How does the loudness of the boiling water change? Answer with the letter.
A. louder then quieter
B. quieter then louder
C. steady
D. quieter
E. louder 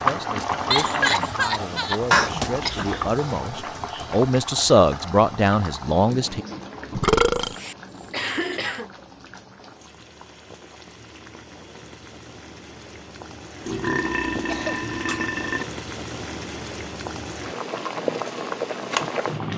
B.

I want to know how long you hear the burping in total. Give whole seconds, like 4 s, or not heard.
4 s.